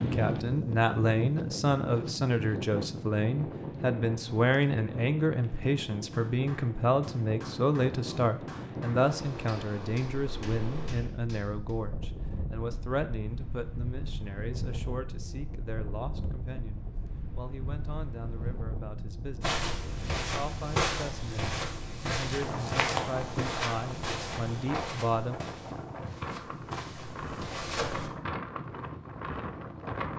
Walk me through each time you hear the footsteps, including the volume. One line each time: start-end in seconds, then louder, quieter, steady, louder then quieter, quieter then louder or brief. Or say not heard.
19.4-28.1 quieter.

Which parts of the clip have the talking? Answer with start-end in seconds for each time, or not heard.
0.0-25.4.